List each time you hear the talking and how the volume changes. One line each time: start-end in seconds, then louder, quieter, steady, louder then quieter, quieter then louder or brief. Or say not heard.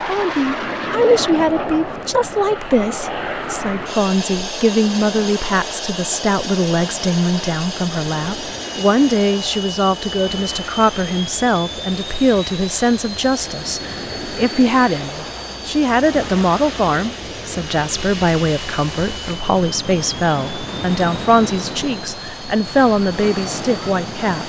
0.0-24.4 steady.